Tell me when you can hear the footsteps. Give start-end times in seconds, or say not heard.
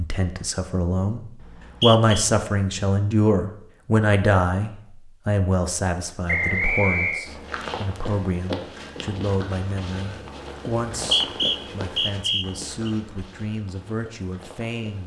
7.2-15.0.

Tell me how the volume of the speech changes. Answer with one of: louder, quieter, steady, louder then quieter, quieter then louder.
quieter.